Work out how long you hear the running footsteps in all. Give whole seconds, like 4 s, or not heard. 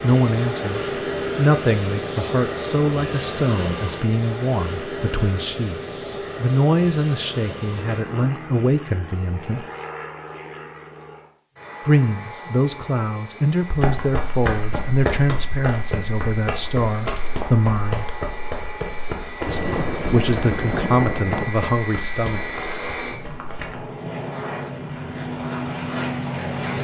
10 s.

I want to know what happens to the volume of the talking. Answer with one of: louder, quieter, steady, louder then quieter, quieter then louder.
steady.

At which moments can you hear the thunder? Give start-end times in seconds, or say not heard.
19.4-21.5.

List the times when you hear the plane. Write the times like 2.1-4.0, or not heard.
0.0-26.7.